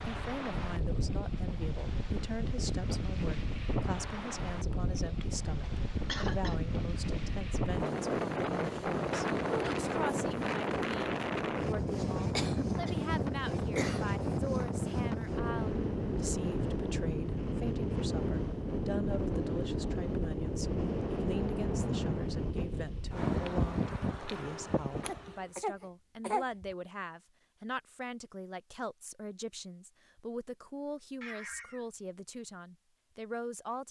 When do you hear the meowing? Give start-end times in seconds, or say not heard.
31.2-31.9.